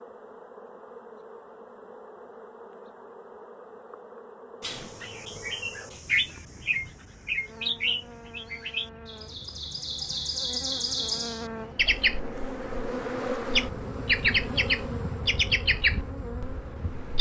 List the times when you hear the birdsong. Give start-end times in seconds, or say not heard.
4.6-17.1.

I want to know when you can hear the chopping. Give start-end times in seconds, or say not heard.
not heard.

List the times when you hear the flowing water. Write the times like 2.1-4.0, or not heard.
not heard.